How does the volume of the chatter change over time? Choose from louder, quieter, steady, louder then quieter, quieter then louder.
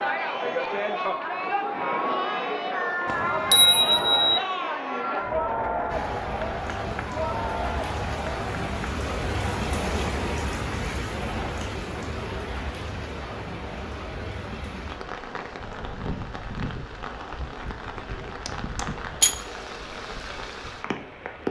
quieter.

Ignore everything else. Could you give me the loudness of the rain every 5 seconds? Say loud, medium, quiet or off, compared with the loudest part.
off, loud, loud, loud, loud.